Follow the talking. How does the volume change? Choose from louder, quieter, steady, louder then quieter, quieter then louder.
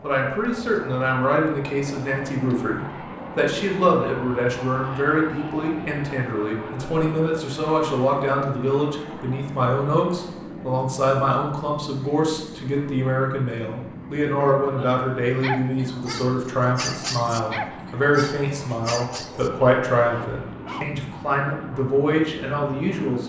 steady.